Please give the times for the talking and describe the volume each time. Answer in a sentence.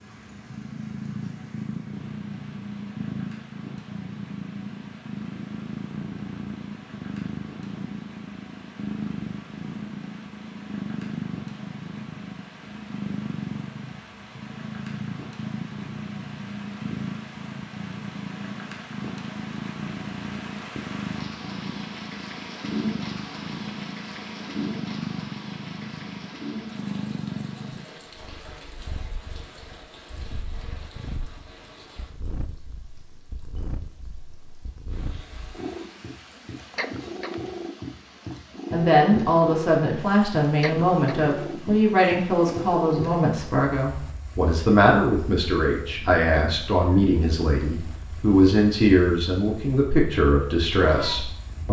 You can hear the talking from 38.7 to 51.6 s, at a steady volume.